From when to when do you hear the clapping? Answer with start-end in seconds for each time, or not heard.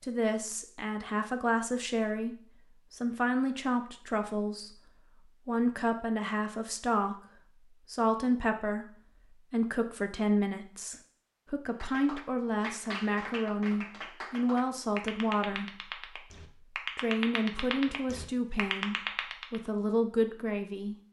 11.8-19.6.